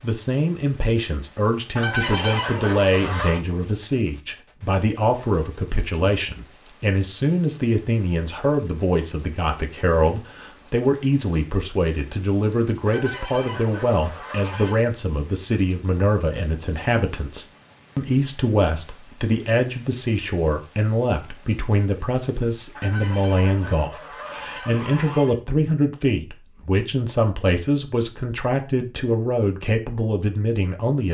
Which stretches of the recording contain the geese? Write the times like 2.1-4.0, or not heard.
1.8-3.4, 12.8-14.8, 22.8-25.4.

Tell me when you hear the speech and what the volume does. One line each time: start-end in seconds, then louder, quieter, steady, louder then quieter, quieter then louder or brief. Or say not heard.
0.0-31.0 steady.